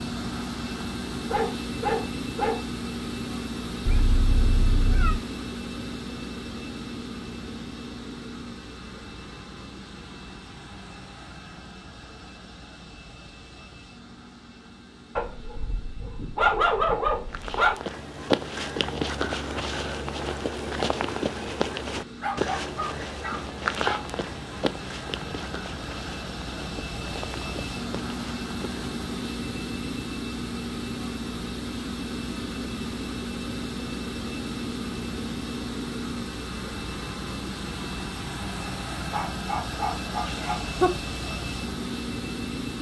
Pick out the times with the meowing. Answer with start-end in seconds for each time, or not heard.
3.9-5.2, 40.2-40.9.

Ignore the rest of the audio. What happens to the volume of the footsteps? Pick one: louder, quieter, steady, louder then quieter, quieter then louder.
quieter.